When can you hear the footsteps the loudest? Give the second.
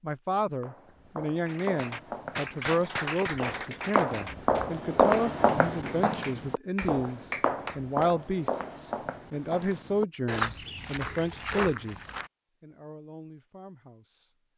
5 s.